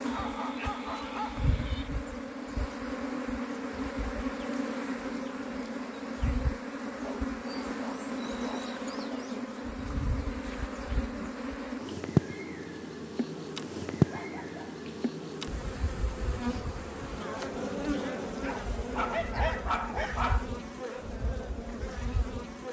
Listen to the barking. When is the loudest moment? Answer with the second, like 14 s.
20 s.